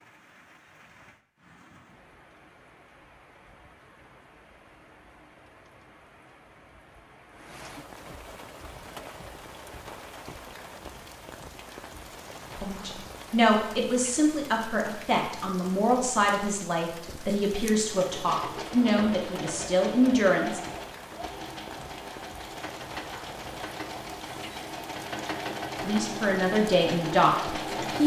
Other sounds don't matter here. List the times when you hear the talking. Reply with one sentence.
The talking can be heard from 12.6 to 20.6 s and from 25.8 to 28.0 s.